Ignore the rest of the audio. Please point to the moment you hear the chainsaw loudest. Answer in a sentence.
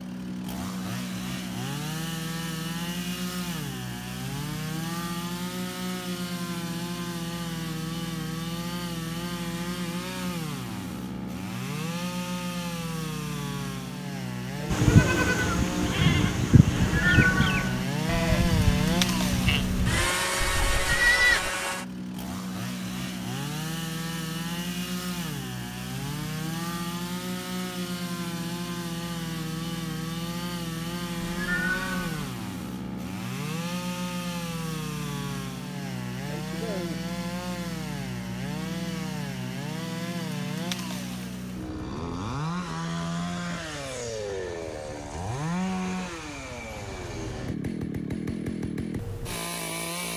The volume of the chainsaw peaks at 19 seconds.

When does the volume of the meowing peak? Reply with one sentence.
The volume of the meowing peaks at 17 seconds.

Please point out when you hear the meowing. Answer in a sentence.
The meowing can be heard from 16.9 to 17.9 s and from 31.2 to 32.3 s.